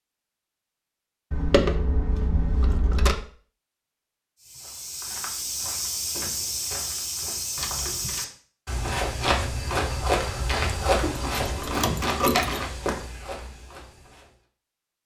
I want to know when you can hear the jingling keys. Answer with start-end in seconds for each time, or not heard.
1.3-3.2, 7.5-8.2, 11.0-12.7.